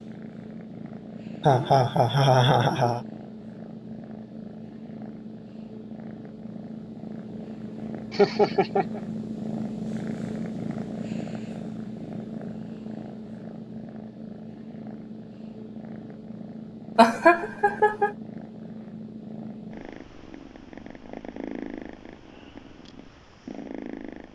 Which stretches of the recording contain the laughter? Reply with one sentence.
You can hear the laughter from 1.4 to 3.0 s, from 8.1 to 9.0 s and from 16.9 to 18.1 s.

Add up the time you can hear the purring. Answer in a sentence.
The purring can be heard for 24 seconds in total.